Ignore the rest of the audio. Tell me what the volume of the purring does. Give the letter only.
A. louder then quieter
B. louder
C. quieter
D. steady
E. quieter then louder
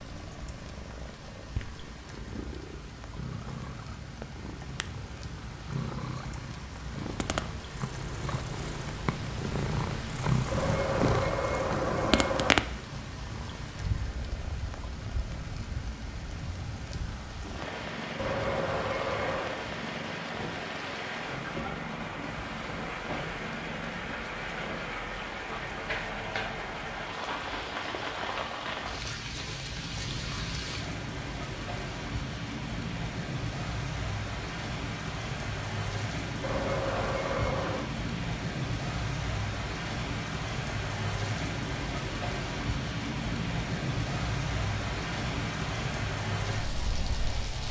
A.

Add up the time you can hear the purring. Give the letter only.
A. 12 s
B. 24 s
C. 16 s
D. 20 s
B.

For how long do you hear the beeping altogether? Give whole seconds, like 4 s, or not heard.
5 s.